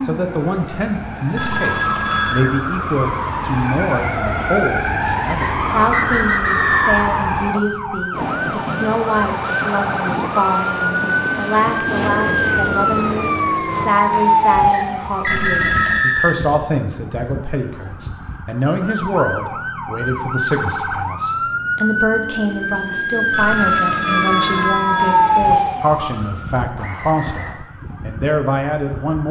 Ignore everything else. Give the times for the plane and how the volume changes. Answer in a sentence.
You can hear the plane from 8.1 to 13.9 s, at a steady volume.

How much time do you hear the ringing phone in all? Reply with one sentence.
You can hear the ringing phone for 4 seconds altogether.